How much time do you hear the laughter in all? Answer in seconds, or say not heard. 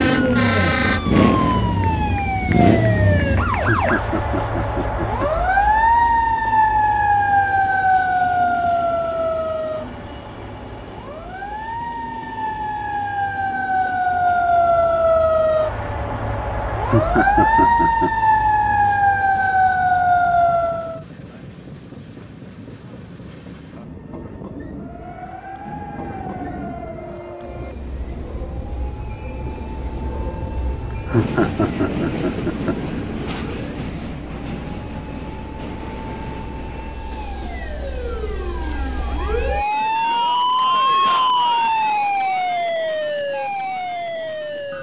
5 s.